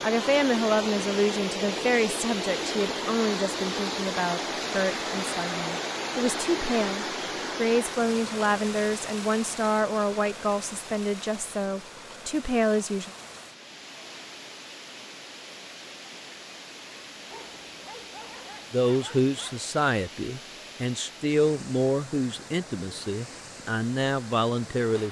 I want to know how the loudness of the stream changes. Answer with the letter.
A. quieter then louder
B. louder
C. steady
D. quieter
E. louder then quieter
D.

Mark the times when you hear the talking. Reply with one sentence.
The talking can be heard from 0.0 to 13.1 s and from 18.7 to 25.0 s.